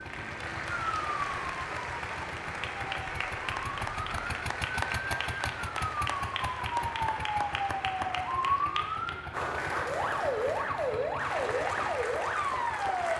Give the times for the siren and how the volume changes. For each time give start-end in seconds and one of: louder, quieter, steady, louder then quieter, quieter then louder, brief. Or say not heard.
0.0-13.1 louder.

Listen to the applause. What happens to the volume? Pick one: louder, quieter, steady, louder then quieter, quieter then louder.
steady.